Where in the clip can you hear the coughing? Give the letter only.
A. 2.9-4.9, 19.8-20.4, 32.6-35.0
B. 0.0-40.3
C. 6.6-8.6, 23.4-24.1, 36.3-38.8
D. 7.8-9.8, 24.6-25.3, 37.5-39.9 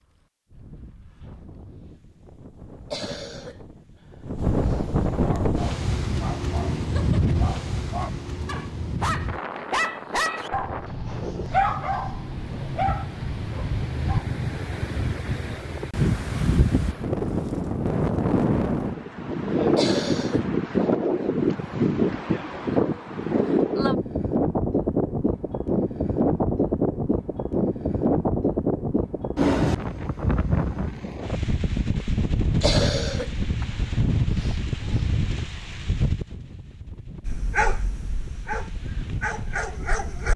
A.